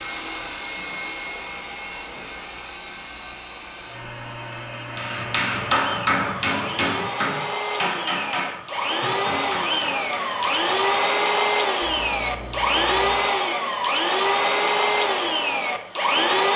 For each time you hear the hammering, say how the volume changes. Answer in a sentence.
The hammering can be heard from 5.0 to 11.2 s, getting quieter.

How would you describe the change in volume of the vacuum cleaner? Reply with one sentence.
The volume of the vacuum cleaner goes up.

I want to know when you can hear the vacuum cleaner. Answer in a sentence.
You can hear the vacuum cleaner from 0.0 to 16.5 s.